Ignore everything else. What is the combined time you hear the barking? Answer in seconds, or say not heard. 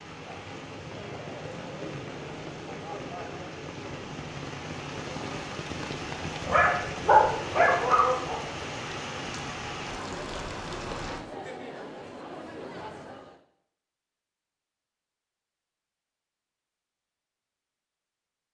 2 s.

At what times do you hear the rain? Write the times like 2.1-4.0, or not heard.
0.0-11.2.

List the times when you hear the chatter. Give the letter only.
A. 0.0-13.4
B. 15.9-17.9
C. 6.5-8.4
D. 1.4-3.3
A.